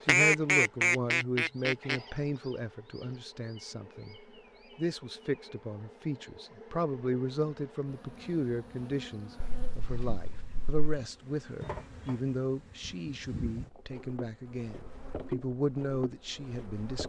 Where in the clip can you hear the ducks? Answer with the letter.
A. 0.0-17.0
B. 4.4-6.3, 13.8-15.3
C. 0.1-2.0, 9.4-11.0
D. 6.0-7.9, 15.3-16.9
C.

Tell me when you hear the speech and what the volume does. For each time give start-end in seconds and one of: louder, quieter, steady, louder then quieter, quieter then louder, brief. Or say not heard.
0.0-17.0 steady.